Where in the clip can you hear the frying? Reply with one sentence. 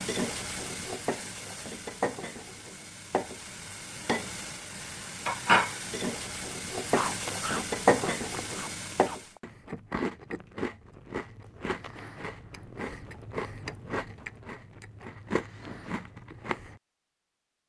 The frying can be heard from 0.0 to 9.2 s.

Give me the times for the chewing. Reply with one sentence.
You can hear the chewing from 6.9 to 16.8 s.